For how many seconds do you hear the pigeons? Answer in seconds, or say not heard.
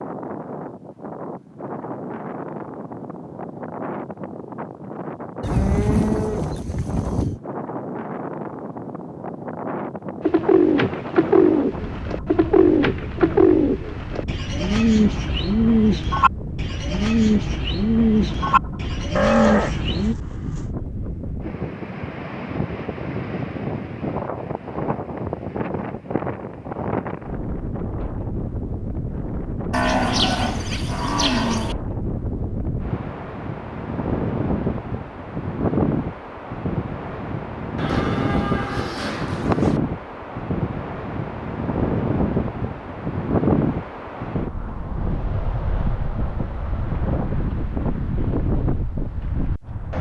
10 s.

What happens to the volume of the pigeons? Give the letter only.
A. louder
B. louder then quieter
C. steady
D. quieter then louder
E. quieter
C.